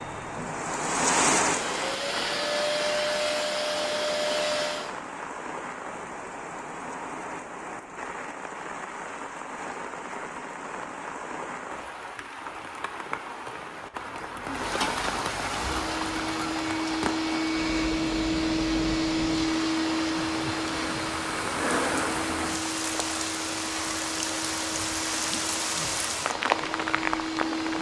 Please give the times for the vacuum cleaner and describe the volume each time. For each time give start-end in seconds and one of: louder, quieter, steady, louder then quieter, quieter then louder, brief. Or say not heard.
0.0-4.9 louder
15.5-27.7 quieter.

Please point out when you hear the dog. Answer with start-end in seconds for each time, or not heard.
not heard.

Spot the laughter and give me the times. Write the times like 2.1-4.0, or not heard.
not heard.